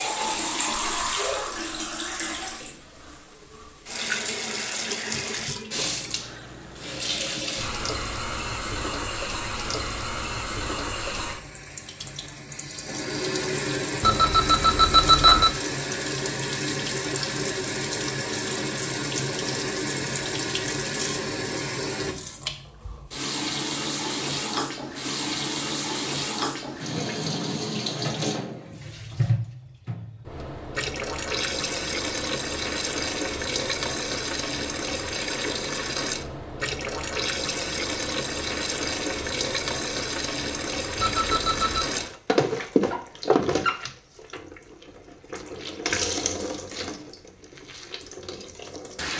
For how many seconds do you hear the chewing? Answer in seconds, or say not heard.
not heard.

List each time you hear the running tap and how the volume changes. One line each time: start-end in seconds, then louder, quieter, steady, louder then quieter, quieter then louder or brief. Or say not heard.
0.0-49.1 steady.